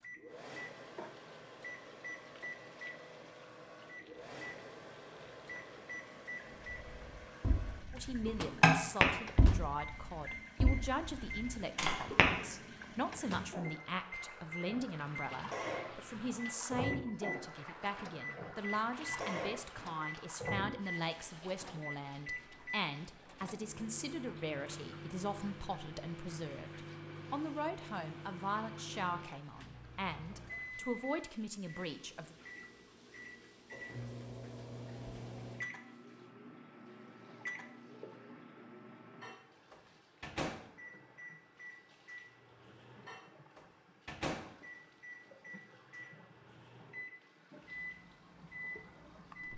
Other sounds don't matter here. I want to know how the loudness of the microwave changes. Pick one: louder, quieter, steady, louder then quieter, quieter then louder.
steady.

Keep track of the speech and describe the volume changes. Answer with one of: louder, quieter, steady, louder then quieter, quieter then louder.
steady.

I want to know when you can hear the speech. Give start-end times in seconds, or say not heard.
7.9-32.4.